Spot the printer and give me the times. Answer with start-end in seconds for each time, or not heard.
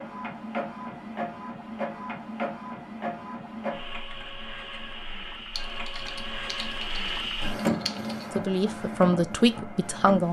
0.0-10.2.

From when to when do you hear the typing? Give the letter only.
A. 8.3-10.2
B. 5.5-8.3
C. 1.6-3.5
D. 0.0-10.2
B.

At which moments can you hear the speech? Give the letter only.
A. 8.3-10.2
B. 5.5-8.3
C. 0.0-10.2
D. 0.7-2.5
A.